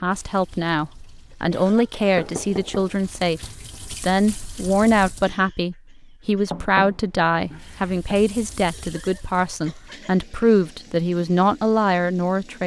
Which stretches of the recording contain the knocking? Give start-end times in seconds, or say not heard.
2.1-3.0, 6.5-8.2.